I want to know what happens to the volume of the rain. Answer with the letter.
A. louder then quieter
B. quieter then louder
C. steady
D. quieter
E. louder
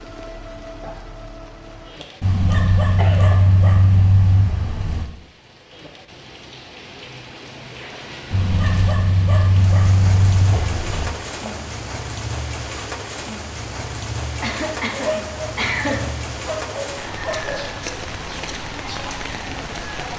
E.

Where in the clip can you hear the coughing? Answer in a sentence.
The coughing can be heard from 2.0 to 3.5 s, from 10.5 to 11.8 s and from 14.4 to 16.1 s.